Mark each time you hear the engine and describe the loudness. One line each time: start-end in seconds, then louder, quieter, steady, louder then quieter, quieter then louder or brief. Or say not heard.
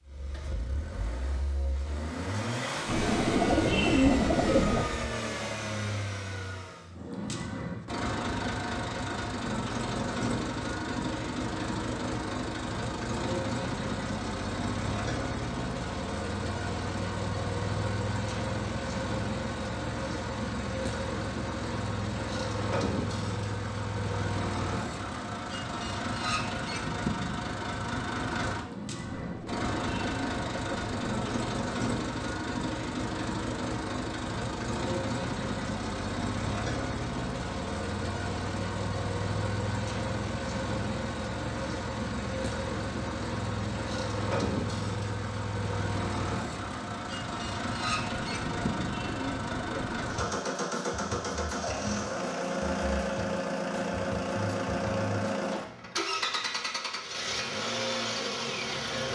0.1-59.0 steady.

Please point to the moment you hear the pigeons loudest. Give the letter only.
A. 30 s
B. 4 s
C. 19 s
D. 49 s
B.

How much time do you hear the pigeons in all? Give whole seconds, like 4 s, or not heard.
6 s.